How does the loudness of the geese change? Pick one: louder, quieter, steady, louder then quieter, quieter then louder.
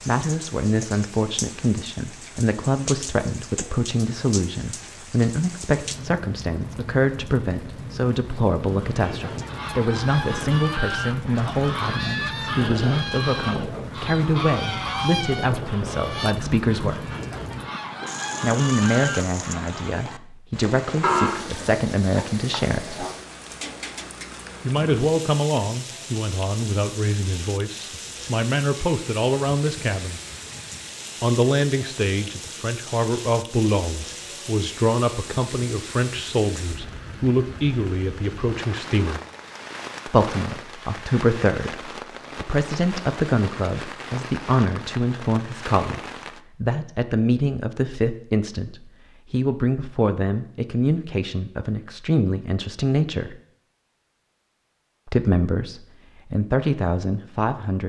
steady.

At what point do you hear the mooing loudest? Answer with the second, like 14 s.
21 s.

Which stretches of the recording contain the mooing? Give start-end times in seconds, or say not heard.
21.0-23.1.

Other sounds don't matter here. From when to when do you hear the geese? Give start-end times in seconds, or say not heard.
8.6-20.0.